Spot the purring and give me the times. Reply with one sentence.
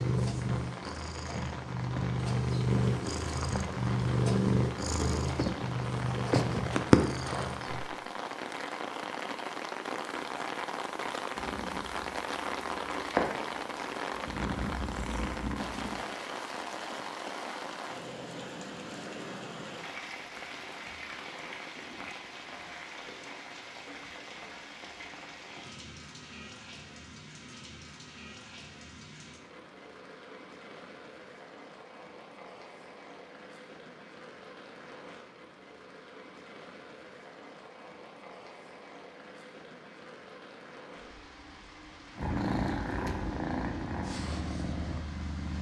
The purring can be heard from 0.0 to 8.0 s, from 11.3 to 16.1 s and from 42.1 to 45.5 s.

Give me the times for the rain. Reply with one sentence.
You can hear the rain from 0.0 to 45.5 s.